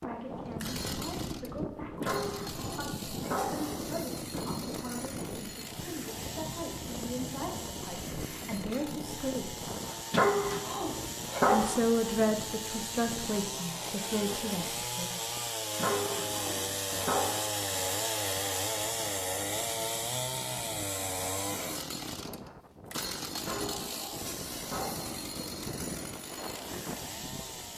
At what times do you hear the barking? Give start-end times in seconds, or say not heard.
2.0-3.9, 10.1-11.8, 15.8-17.4, 23.4-25.2.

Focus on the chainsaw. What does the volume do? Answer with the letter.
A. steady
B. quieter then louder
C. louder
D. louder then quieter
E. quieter
D.